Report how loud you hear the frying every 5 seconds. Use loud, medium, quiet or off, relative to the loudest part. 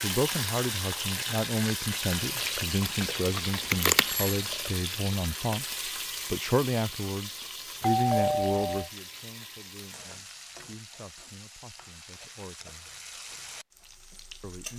loud, medium, quiet.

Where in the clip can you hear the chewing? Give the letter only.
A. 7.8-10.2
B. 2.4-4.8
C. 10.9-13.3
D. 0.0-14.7
B.